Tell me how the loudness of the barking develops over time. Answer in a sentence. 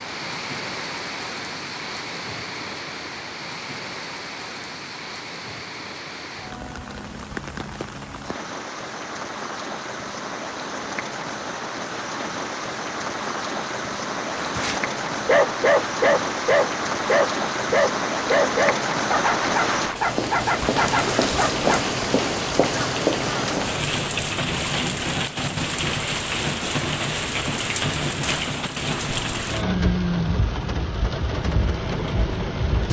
The volume of the barking goes down.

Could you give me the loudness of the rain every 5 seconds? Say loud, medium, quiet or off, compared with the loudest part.
medium, medium, medium, loud, loud, loud, loud.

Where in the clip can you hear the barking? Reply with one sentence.
The barking can be heard from 14.3 to 21.9 s.